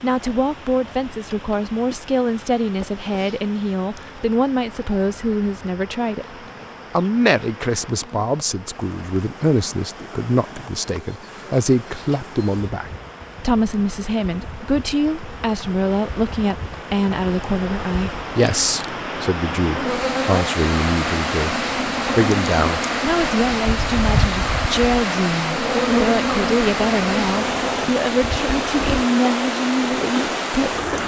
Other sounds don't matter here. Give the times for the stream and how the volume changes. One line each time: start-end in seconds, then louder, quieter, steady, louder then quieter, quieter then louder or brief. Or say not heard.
0.0-31.0 louder.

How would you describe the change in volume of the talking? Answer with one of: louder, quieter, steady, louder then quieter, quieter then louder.
steady.